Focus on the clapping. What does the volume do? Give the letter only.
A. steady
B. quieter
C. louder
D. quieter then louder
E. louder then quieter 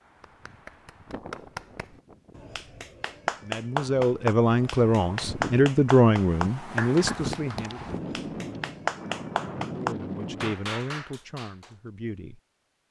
C.